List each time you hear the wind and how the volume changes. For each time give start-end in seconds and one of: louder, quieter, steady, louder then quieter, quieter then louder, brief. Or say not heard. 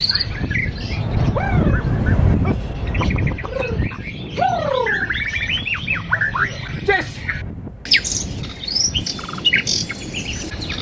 0.0-10.7 quieter.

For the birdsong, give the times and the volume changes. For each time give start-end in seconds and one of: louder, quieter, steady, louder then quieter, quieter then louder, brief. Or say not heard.
0.0-10.7 louder.